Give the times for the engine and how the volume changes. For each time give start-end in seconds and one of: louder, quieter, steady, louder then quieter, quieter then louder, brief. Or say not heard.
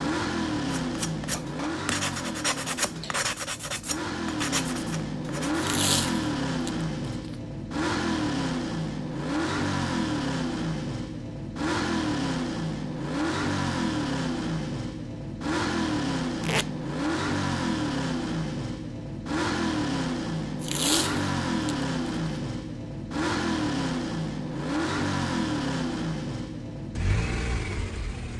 0.0-28.3 steady.